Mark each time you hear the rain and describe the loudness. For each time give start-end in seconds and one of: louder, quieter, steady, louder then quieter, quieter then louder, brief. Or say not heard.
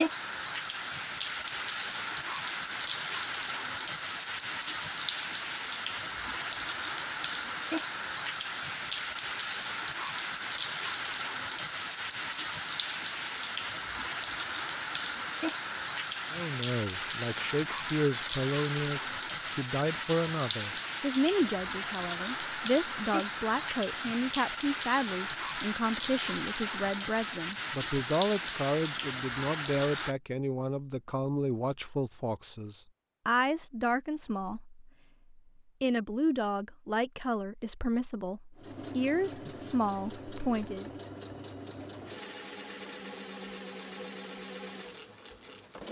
0.0-30.1 steady.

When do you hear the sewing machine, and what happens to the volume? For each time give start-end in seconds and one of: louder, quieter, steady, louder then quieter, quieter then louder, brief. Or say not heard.
38.5-45.8 steady.